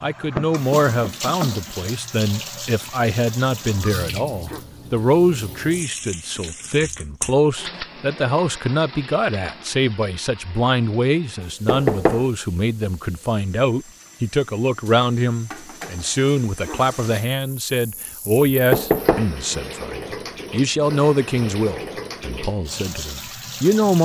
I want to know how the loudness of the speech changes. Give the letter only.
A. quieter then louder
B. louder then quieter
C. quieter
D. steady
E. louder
D.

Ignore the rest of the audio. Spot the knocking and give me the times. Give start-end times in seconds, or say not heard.
0.3-1.7, 11.7-12.2, 18.7-19.2.